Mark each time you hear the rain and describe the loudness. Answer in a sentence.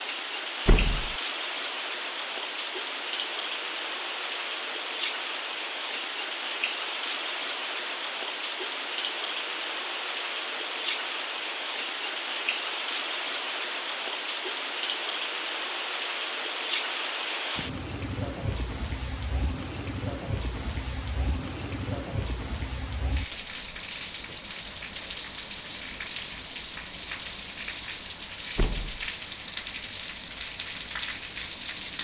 The rain can be heard from 0.0 to 31.9 s, at a steady volume.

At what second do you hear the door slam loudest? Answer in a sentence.
The loudest moment of the door slam is at 1 second.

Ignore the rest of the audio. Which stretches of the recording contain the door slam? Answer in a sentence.
The door slam can be heard from 0.7 to 1.1 s and from 28.6 to 29.1 s.